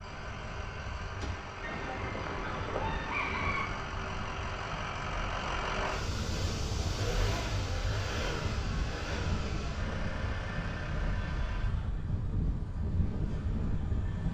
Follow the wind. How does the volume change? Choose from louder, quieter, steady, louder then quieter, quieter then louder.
louder.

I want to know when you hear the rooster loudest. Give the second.
3 s.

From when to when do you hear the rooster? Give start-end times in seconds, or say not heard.
1.6-3.6.